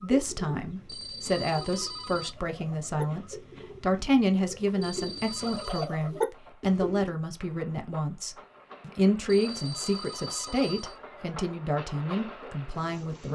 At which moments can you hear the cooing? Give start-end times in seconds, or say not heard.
0.0-7.2.